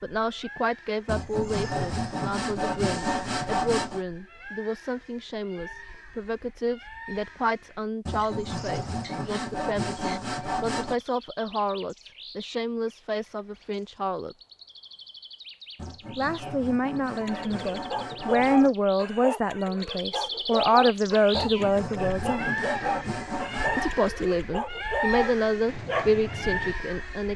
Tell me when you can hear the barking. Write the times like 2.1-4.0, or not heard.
17.2-26.8.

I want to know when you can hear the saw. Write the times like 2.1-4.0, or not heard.
1.1-4.0, 8.1-11.0, 15.8-18.8, 21.3-23.9.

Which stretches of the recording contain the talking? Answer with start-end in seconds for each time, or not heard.
0.0-14.3, 16.1-22.6, 23.8-27.3.